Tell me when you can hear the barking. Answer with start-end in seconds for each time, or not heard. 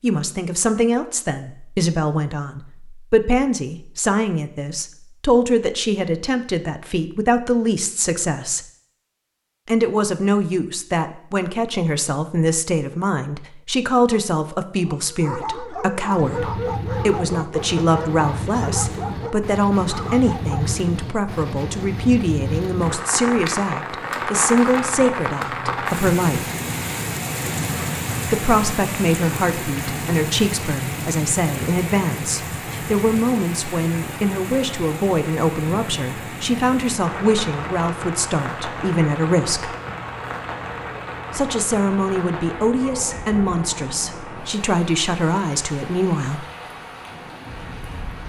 14.8-20.8.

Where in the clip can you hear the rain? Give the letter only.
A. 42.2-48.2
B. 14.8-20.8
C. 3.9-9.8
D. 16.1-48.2
D.